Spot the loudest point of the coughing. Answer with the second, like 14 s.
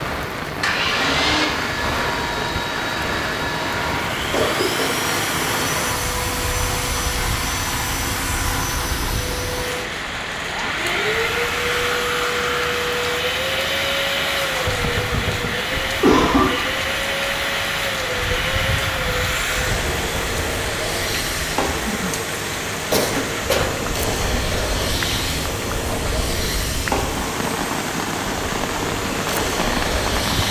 16 s.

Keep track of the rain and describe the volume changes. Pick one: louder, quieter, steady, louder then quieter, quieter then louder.
steady.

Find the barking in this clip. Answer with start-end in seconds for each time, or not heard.
not heard.